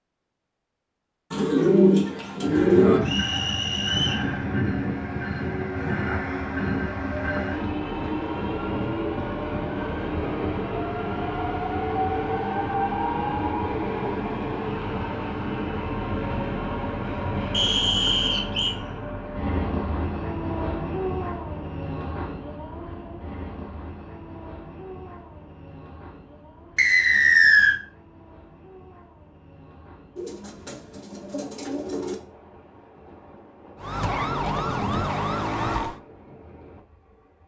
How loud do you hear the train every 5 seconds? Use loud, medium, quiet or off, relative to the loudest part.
loud, loud, loud, loud, medium, quiet, quiet, quiet.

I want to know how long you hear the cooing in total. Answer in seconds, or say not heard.
4 s.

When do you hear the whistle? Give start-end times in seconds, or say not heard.
3.0-4.2, 17.5-18.8, 26.8-27.8.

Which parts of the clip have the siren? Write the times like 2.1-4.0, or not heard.
33.8-36.0.